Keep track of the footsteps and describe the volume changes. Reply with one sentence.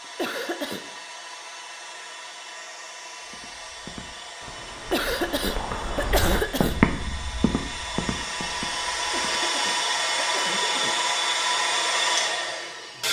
The volume of the footsteps goes up, then down.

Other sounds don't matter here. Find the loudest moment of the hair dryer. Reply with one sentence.
The volume of the hair dryer peaks at 12 seconds.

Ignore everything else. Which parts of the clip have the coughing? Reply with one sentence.
You can hear the coughing from 0.1 to 0.8 s, from 4.9 to 6.8 s and from 9.1 to 11.0 s.